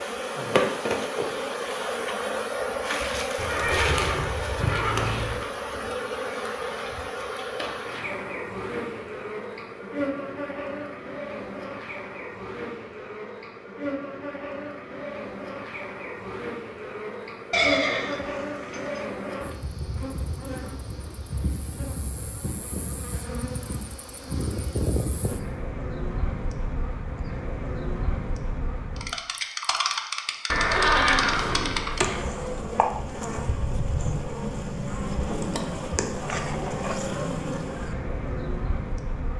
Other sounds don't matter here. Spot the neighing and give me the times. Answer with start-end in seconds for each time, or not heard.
3.4-5.4, 17.5-19.0, 30.4-32.2.